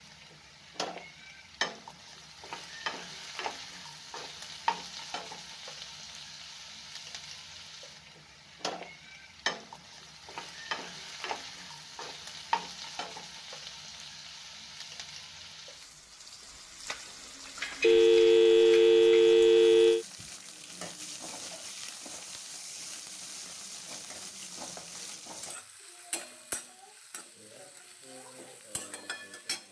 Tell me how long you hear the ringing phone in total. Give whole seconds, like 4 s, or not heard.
2 s.